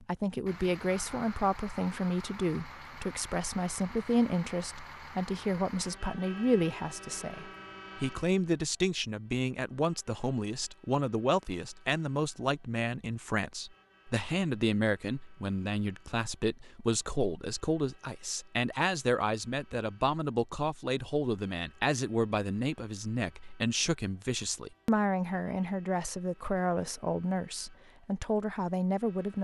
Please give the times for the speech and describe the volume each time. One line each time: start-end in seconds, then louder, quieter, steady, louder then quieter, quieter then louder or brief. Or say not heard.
0.0-29.3 steady.